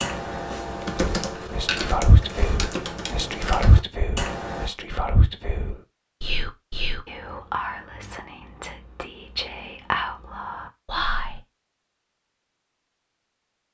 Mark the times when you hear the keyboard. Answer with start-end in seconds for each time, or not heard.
0.0-4.7.